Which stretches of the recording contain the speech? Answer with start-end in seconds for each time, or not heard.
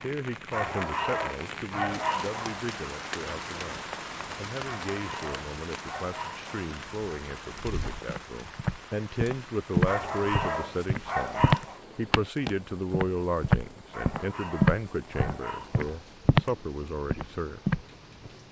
0.0-17.6.